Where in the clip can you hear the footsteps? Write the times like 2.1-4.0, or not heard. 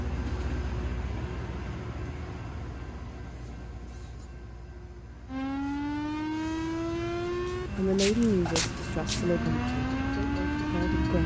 7.5-9.4.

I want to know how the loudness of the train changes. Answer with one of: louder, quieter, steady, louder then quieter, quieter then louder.
quieter then louder.